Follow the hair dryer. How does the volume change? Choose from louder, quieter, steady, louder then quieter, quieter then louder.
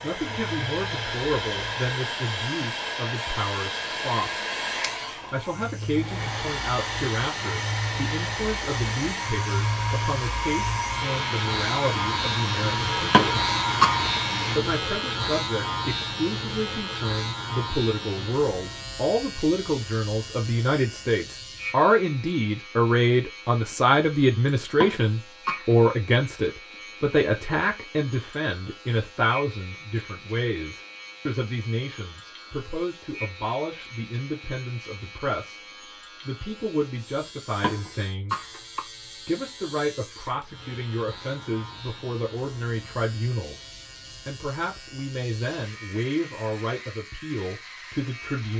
steady.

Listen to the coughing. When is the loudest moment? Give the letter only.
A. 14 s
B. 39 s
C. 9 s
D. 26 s
A.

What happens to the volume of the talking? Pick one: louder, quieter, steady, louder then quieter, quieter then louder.
louder then quieter.